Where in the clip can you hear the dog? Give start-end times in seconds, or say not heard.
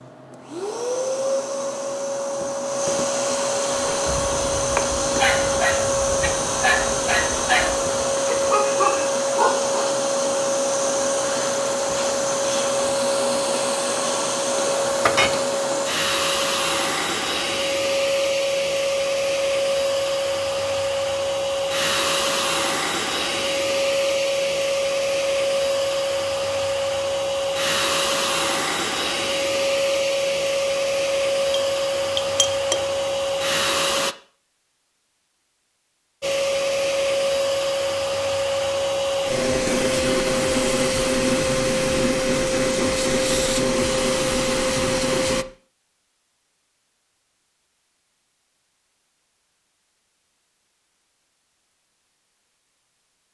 3.7-9.7.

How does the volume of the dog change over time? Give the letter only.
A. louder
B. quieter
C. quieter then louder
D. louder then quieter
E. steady
A.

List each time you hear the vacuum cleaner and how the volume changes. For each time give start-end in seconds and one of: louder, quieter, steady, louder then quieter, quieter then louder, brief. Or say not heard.
0.0-34.1 steady
36.2-45.5 steady.